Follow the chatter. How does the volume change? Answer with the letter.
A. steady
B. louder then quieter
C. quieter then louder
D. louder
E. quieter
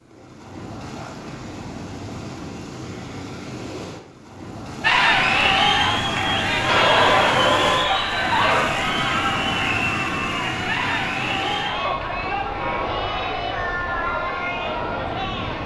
E.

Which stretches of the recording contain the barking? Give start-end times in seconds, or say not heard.
6.7-8.7.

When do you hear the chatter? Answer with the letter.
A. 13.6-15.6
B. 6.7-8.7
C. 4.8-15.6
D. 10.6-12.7
C.